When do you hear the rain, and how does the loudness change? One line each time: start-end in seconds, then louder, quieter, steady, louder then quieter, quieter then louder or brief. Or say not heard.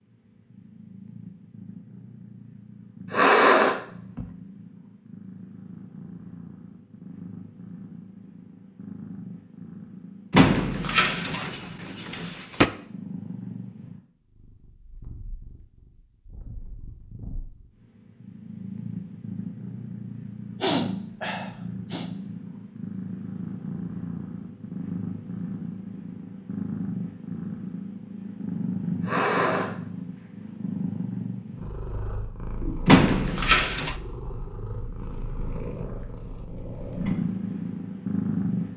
not heard.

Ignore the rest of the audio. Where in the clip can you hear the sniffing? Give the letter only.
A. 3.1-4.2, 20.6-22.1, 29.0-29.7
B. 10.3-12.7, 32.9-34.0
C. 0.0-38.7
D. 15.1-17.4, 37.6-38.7
A.